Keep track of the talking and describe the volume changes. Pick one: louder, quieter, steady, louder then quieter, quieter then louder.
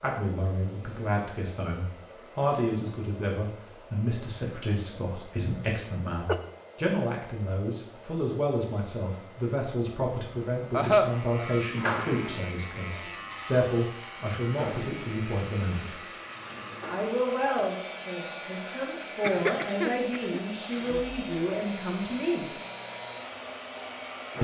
steady.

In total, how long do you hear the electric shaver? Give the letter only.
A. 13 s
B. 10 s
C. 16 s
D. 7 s
A.